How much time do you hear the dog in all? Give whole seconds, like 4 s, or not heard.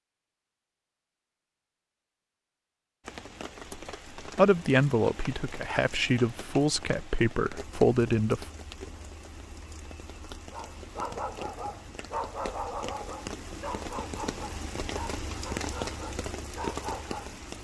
7 s.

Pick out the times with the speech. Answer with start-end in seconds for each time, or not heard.
4.2-8.5.